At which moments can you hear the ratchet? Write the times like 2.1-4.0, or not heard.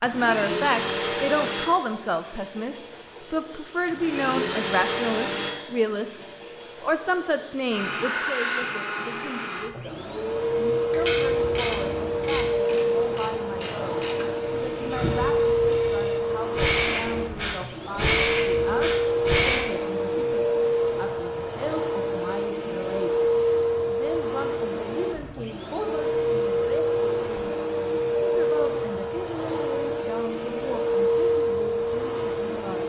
10.9-19.6.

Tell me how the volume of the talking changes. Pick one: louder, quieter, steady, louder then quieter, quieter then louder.
quieter.